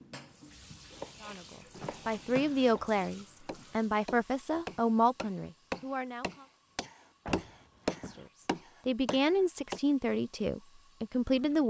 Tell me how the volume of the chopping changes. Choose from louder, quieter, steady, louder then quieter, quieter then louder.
louder.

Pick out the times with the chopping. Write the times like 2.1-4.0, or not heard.
0.5-9.8.